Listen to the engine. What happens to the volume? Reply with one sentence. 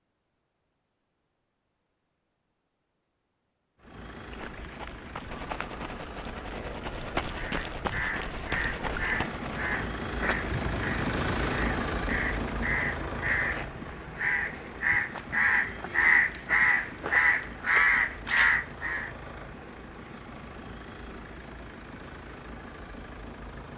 The volume of the engine goes up, then down.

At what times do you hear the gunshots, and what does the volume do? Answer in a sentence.
You can hear the gunshots from 5.3 to 9.8 s, at a steady volume.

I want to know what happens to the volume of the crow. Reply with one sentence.
The loudness of the crow goes up.